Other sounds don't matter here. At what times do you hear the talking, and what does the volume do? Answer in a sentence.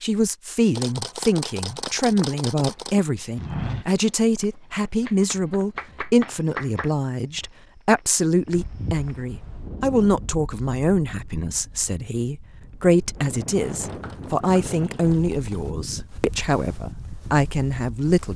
The talking can be heard from 0.0 to 18.3 s, at a steady volume.